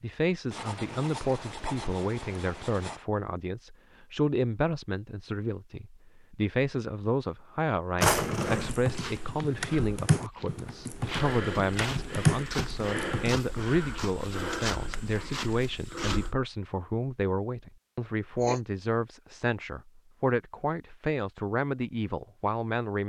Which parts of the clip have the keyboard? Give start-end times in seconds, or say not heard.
8.5-13.8.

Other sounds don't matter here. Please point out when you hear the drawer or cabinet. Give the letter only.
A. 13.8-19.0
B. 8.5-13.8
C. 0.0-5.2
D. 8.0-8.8
D.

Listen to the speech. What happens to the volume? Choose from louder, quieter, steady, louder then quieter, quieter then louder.
steady.